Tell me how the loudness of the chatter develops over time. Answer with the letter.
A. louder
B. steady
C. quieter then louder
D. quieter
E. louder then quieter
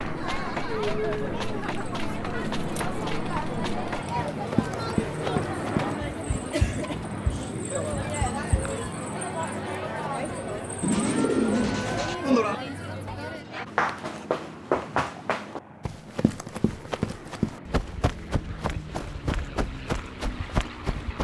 B.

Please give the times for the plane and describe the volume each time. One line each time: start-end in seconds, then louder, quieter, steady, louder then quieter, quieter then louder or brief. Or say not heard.
0.0-21.1 quieter.